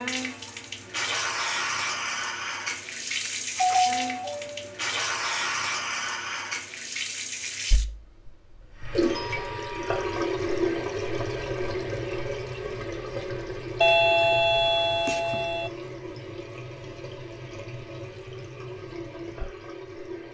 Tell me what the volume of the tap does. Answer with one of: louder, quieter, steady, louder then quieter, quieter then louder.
quieter.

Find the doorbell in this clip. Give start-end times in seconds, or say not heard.
3.2-4.8, 9.1-10.3, 13.8-15.7.